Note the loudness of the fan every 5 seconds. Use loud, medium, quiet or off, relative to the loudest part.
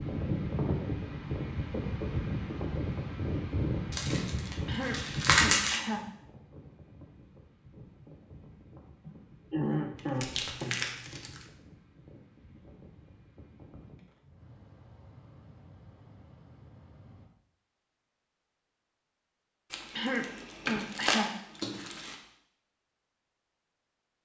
loud, medium, quiet, quiet, off.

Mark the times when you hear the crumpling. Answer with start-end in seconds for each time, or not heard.
3.9-5.8, 9.9-11.4, 19.7-22.1.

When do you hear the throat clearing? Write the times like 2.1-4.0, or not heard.
4.7-6.0, 9.1-10.8, 19.9-21.3.